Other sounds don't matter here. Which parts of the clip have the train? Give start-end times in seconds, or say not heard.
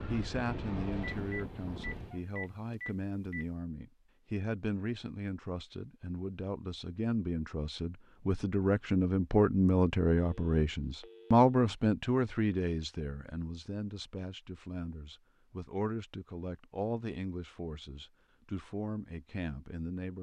0.0-2.2.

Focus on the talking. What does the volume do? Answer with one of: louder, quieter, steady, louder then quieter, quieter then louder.
louder then quieter.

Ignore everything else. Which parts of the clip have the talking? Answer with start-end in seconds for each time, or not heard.
0.1-20.1.